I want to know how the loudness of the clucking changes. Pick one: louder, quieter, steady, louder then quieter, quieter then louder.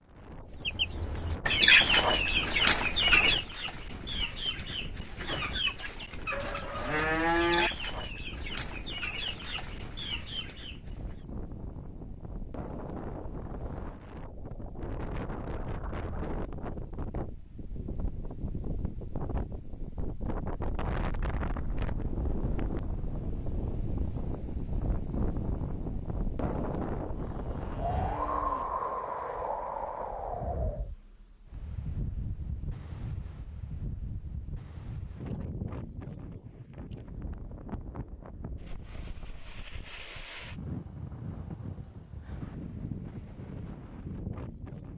quieter.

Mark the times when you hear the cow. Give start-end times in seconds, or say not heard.
6.3-7.7, 27.1-28.7.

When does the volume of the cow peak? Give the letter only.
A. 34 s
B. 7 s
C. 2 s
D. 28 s
B.